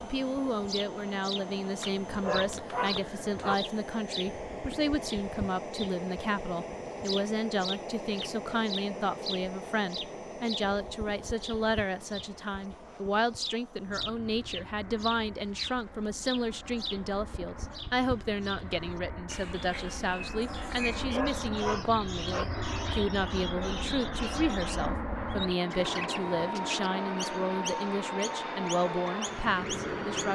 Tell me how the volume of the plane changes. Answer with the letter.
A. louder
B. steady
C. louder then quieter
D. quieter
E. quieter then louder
E.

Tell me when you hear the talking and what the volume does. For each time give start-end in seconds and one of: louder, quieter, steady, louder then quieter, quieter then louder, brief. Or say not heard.
0.0-30.3 steady.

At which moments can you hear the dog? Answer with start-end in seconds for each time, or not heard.
1.8-3.5, 20.7-22.4.